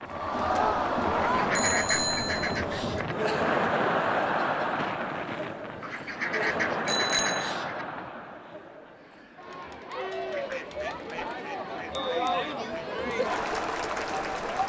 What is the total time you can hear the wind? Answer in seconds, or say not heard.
8 s.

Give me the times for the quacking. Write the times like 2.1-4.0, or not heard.
1.4-3.1, 5.8-7.8, 10.3-12.9.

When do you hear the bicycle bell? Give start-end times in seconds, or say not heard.
1.6-2.6, 6.8-7.5, 12.1-12.5.